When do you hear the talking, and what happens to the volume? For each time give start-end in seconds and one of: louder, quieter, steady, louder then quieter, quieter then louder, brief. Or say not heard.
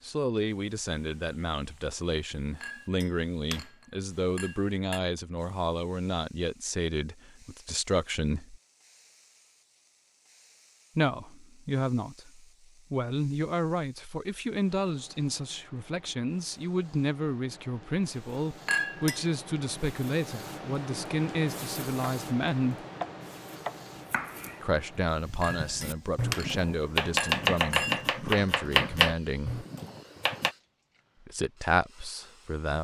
0.0-8.6 steady
10.9-22.8 steady
24.6-29.6 steady
31.2-32.8 brief.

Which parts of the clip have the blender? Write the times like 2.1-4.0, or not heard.
not heard.